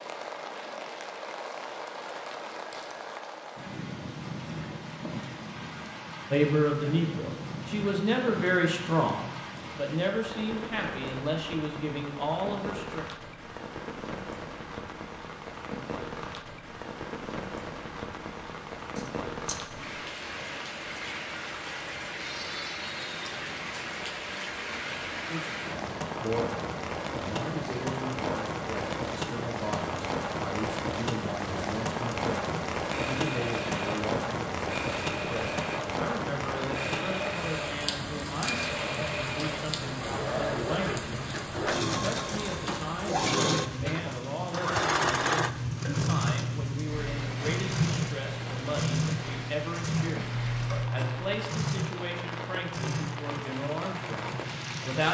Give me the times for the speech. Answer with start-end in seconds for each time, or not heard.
6.3-13.1, 25.2-55.0.